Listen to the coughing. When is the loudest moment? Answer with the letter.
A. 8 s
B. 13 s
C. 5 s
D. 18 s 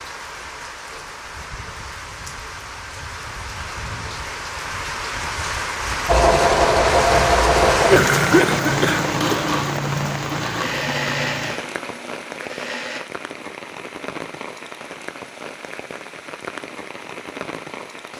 A.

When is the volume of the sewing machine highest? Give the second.
7 s.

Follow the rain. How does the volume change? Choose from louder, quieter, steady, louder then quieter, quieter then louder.
louder then quieter.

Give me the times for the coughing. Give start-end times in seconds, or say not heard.
7.8-9.4.